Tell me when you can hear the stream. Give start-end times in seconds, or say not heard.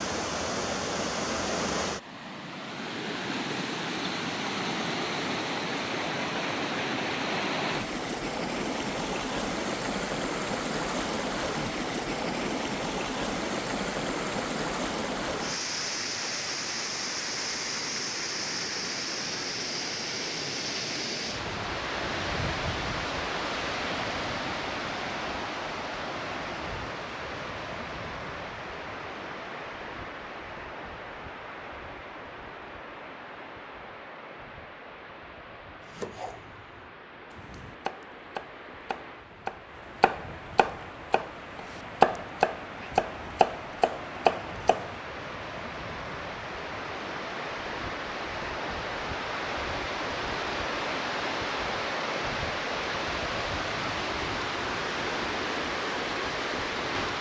0.0-57.1.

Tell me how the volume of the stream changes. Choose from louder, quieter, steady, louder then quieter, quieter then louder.
quieter then louder.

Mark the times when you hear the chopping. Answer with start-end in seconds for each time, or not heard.
35.9-45.0.